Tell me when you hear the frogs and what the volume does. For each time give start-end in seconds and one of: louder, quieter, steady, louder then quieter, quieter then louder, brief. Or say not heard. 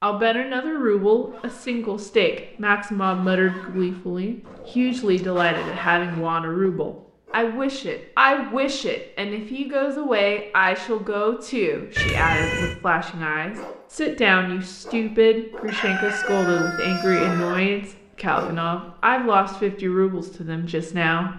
not heard.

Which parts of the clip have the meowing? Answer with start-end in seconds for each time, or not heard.
11.9-12.8.